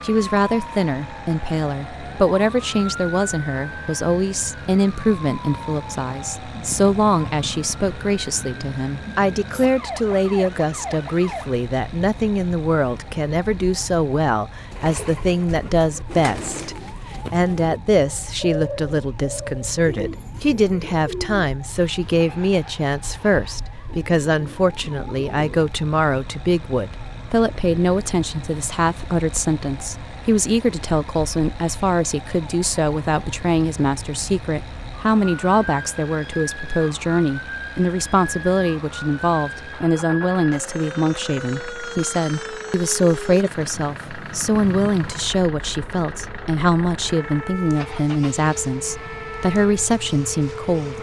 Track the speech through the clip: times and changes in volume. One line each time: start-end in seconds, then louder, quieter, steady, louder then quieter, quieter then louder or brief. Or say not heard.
0.0-50.9 steady.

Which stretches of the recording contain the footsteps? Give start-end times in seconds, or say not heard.
not heard.